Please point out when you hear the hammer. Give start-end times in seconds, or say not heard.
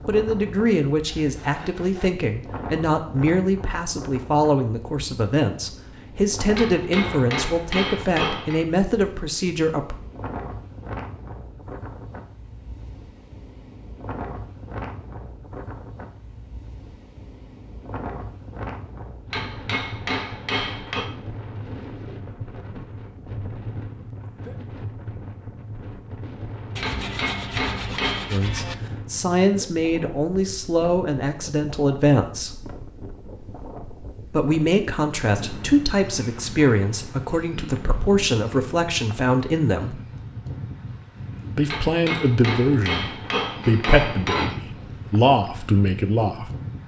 6.5-8.7, 19.3-21.1, 26.8-28.4, 41.6-44.5.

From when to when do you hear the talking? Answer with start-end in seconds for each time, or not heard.
0.1-9.9, 28.3-32.6, 34.3-40.0, 41.5-46.5.